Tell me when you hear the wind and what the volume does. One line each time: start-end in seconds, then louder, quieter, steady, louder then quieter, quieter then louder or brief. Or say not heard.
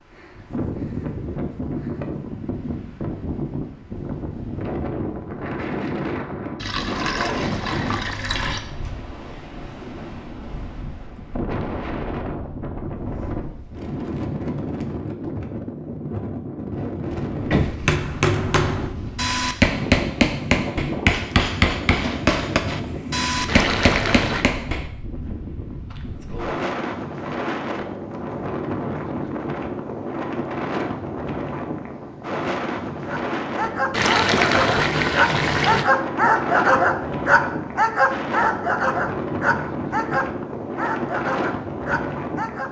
0.0-42.6 steady.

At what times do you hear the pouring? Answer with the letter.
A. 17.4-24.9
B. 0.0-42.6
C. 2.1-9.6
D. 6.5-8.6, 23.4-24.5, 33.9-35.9
D.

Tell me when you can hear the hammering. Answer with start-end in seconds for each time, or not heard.
17.4-24.9.